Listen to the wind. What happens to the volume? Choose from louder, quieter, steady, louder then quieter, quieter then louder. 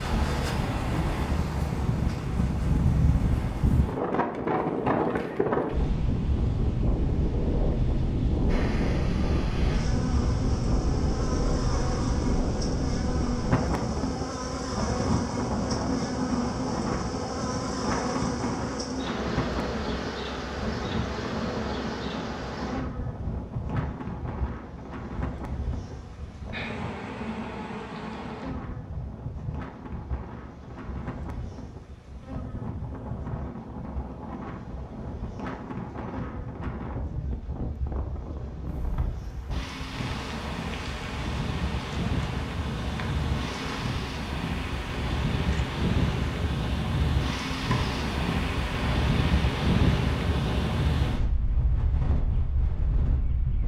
quieter then louder.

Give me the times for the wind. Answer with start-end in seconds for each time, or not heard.
0.0-53.6.